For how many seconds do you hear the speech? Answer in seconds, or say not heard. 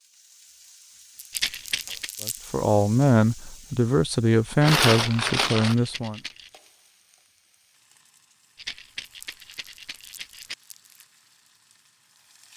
4 s.